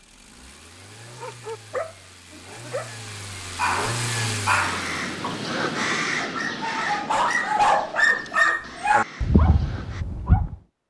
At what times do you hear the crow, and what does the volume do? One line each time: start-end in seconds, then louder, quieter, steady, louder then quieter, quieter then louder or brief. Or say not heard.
4.6-10.1 quieter.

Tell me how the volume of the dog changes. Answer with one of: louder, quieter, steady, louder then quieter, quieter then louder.
louder then quieter.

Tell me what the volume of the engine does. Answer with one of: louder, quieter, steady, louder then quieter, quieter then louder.
louder.